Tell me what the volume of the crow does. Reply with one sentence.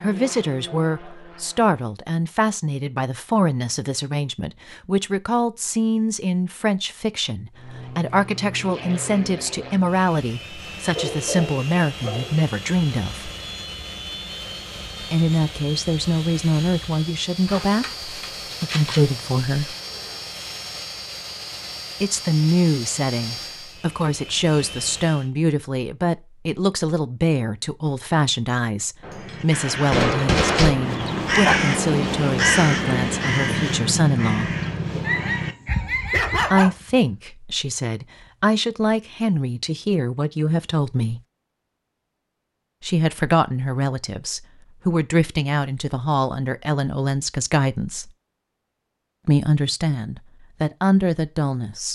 The loudness of the crow goes up, then down.